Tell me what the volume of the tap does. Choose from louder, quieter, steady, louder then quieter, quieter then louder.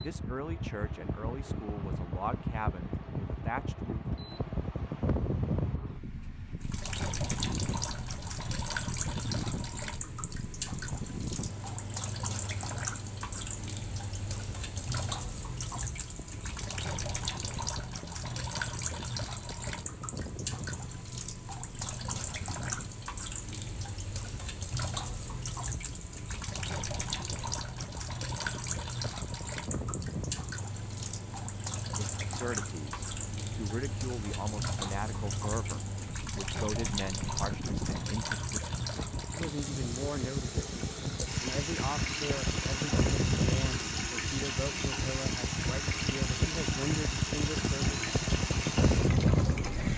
steady.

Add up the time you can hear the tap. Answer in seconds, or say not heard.
43 s.